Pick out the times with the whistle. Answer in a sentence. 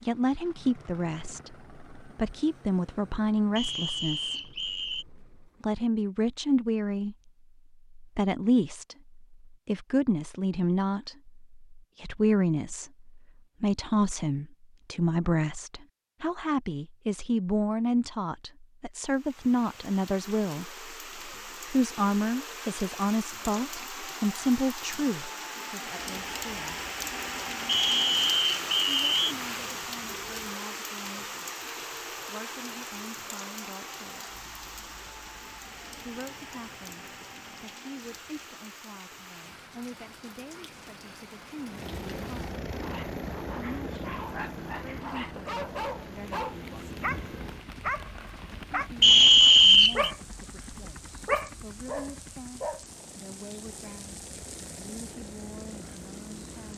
The whistle can be heard from 3.5 to 5.0 s, from 27.6 to 29.4 s and from 49.0 to 50.1 s.